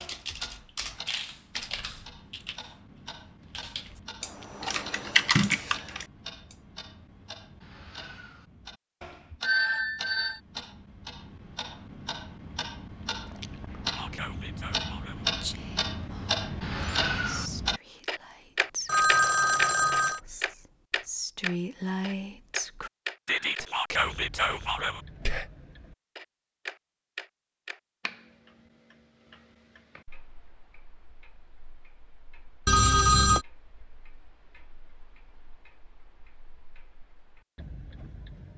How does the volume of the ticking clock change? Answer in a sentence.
The loudness of the ticking clock goes up, then down.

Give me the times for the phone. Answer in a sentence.
The phone can be heard from 9.4 to 10.4 s, from 18.9 to 20.2 s and from 32.6 to 33.5 s.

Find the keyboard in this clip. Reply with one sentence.
You can hear the keyboard from 0.0 to 6.5 s.